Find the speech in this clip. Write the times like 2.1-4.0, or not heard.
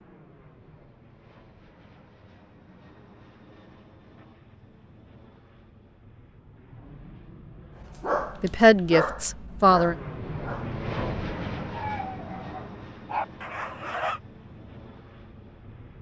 8.4-9.9.